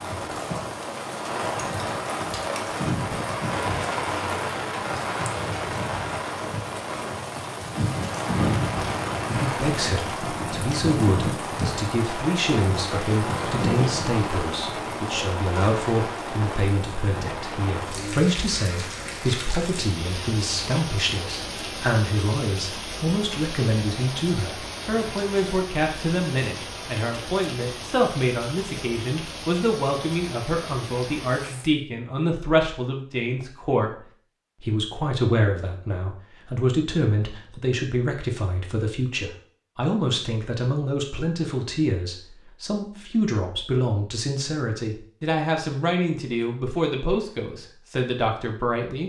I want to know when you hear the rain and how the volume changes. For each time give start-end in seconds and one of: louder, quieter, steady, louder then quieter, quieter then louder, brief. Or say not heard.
0.0-31.7 quieter.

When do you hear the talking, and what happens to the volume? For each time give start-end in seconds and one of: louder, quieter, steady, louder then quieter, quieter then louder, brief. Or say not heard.
9.3-49.0 steady.